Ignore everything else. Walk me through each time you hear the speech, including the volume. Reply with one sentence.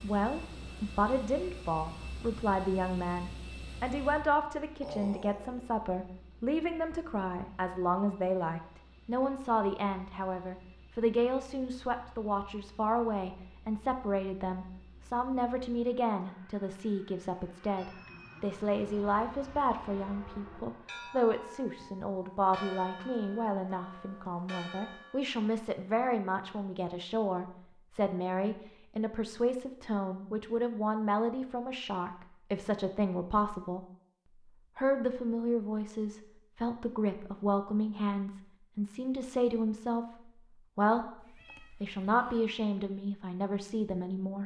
You can hear the speech from 0.0 to 33.9 s, at a steady volume; from 34.8 to 41.1 s, at a steady volume; and briefly from 41.8 to 44.4 s.